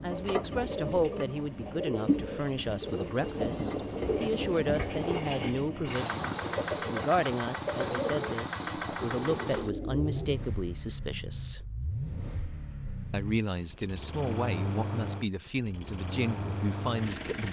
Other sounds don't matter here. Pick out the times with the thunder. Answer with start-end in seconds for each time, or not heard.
2.9-5.6.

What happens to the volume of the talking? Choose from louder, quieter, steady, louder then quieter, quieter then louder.
steady.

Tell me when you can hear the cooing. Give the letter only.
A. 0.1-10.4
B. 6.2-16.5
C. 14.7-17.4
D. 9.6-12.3
A.